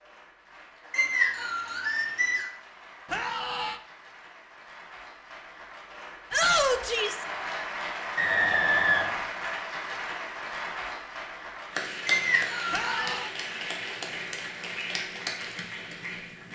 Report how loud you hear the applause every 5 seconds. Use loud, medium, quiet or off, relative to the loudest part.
quiet, loud, loud, loud.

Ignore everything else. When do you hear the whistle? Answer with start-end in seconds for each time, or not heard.
0.9-2.5, 8.2-9.2, 12.1-13.2.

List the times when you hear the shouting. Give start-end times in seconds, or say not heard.
3.1-3.8, 6.3-7.2, 12.7-13.3.